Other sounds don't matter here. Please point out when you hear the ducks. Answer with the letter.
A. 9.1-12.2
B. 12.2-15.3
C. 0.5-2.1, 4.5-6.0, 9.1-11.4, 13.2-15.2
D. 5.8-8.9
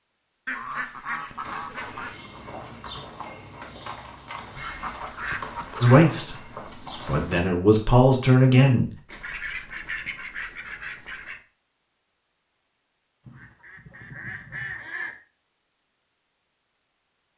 C.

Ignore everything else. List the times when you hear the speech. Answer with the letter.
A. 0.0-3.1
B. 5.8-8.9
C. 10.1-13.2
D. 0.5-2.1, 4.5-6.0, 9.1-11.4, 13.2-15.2
B.